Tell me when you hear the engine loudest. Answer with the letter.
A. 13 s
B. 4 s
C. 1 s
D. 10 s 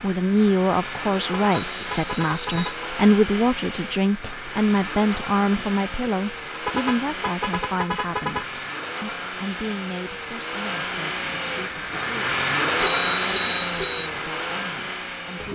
A.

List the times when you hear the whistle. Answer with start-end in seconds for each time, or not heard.
1.5-2.8.